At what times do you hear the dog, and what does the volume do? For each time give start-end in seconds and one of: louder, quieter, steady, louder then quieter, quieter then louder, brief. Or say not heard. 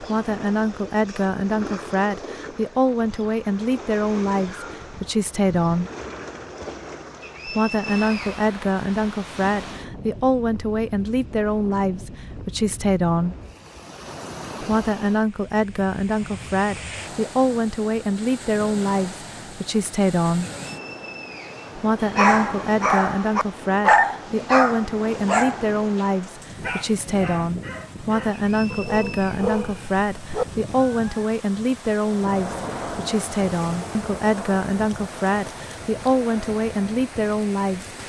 22.0-30.4 quieter then louder.